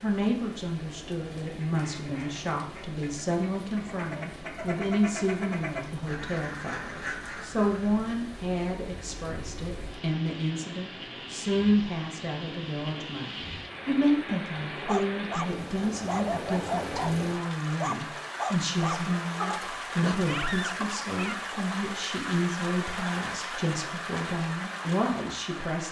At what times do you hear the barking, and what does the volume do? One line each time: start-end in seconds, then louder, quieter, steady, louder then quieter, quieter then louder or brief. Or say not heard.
14.8-21.5 steady.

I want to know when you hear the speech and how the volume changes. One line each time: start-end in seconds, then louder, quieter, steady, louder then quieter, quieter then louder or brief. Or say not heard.
0.0-25.8 steady.